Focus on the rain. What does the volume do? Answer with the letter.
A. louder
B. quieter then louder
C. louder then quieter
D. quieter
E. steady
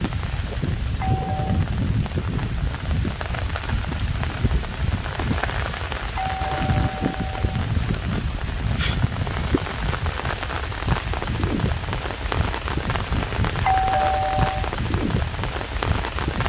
E.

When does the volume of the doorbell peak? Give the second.
14 s.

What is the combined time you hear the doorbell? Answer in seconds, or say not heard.
3 s.